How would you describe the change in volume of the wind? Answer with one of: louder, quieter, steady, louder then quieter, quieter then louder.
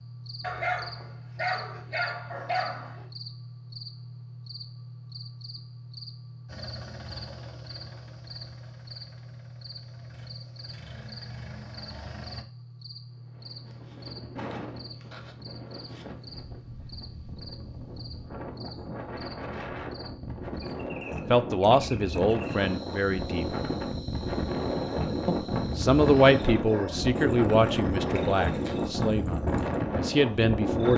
louder.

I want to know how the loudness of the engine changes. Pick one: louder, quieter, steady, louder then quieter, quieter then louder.
quieter then louder.